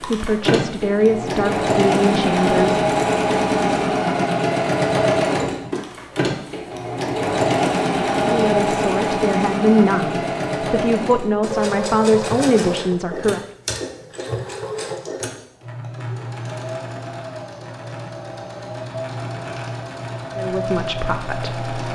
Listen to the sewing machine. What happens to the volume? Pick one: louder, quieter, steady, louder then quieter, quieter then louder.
quieter.